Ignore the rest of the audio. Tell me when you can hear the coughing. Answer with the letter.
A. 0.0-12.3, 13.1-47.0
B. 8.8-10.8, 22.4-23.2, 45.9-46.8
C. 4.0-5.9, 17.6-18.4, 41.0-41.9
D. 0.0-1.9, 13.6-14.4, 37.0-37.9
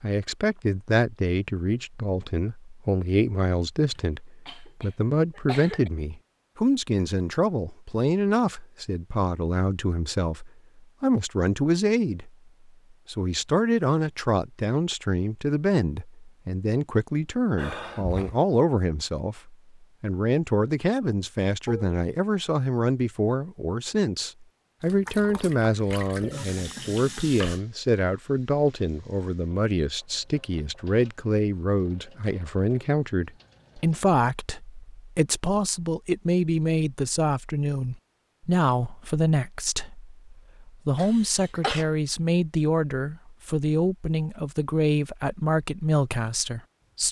C.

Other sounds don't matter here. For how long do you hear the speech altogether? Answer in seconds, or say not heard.
46 s.